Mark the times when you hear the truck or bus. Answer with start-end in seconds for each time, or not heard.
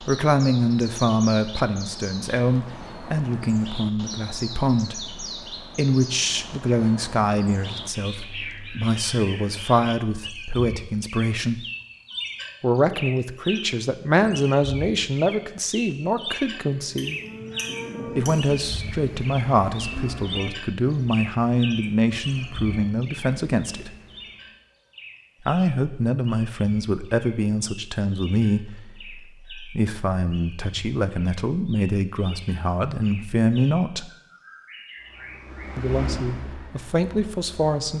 35.0-37.9.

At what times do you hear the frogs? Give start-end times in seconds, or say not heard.
not heard.